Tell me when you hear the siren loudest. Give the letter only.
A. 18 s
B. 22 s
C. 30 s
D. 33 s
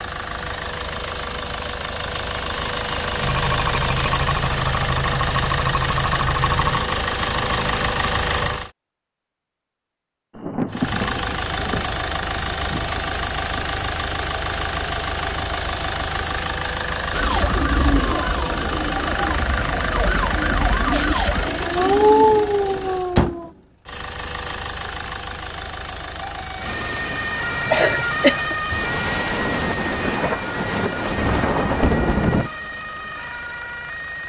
B.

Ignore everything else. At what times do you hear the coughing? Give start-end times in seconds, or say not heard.
27.7-28.6.